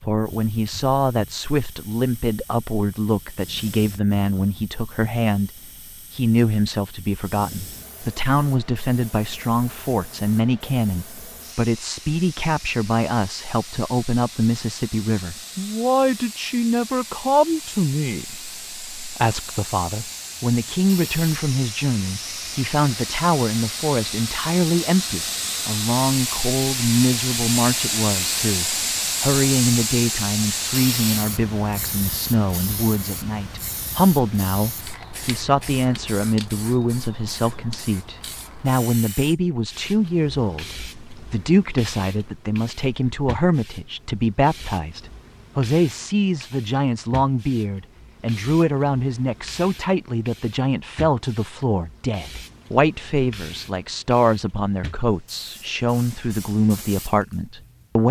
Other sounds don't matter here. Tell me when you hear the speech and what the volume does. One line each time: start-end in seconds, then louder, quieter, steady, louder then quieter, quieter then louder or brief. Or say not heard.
0.1-58.0 steady.